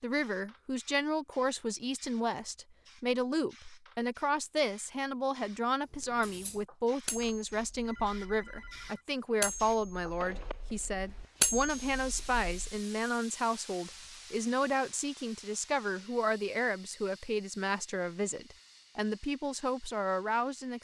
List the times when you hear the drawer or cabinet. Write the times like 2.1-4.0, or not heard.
not heard.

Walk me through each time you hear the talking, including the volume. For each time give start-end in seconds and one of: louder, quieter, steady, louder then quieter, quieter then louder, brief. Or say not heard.
0.0-20.8 steady.